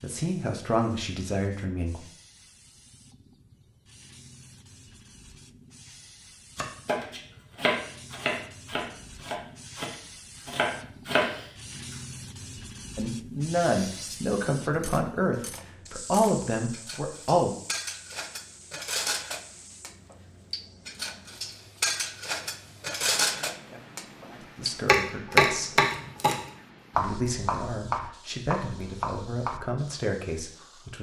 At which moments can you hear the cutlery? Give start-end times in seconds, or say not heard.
13.8-24.8.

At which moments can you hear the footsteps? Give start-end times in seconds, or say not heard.
not heard.